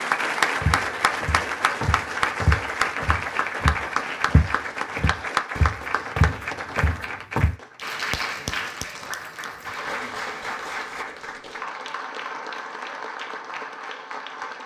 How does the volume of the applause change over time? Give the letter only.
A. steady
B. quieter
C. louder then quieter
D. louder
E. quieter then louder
B.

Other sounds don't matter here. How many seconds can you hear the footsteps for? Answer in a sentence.
You can hear the footsteps for 7 seconds altogether.